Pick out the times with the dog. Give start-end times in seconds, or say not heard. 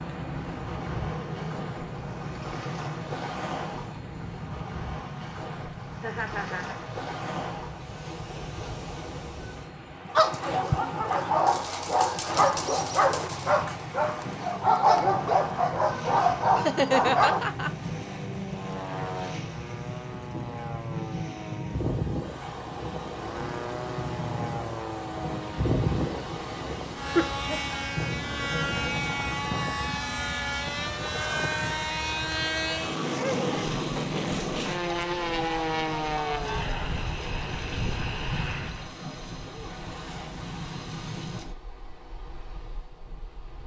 10.2-17.4.